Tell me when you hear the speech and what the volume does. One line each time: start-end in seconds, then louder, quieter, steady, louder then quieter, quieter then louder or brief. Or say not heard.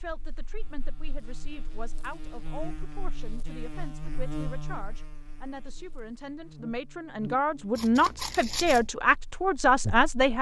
0.0-10.3 louder.